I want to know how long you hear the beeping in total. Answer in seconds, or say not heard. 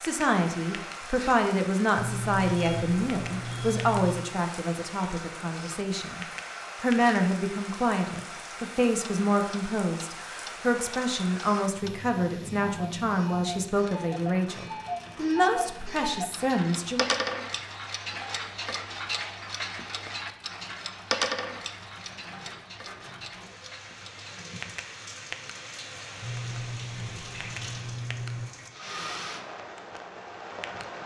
5 s.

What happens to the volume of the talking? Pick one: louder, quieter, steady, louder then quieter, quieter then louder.
steady.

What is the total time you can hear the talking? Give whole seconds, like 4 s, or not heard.
17 s.